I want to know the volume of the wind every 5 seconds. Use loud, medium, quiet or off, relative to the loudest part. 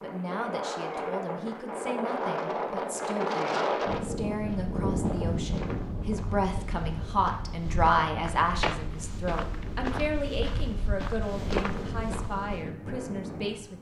loud, medium, medium.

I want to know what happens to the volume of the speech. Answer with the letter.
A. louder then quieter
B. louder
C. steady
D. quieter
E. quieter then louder
A.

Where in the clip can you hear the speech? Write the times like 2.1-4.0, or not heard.
0.0-13.7.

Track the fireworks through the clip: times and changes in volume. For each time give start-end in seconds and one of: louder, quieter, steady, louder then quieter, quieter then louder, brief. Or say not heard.
not heard.